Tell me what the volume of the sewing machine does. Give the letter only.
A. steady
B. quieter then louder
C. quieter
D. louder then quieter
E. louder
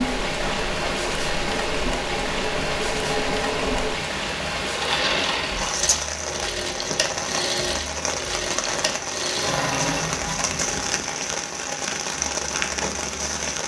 A.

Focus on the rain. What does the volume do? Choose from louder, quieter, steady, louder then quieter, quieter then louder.
steady.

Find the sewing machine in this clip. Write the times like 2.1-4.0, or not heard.
0.0-11.1.